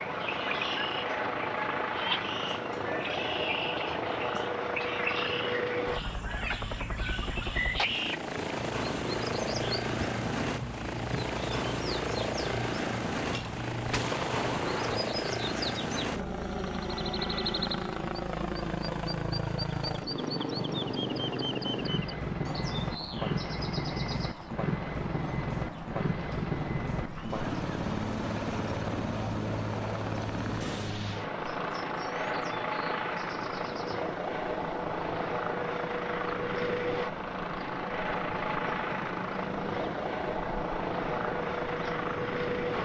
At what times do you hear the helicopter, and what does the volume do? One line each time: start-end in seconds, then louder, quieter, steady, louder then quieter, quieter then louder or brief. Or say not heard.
0.0-42.7 steady.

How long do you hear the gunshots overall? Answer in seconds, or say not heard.
2 s.